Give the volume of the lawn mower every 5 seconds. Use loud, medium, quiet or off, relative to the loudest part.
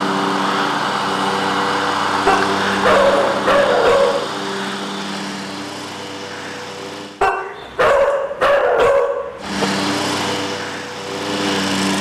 loud, medium, loud.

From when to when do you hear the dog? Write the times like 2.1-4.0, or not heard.
2.2-4.3, 7.2-9.7.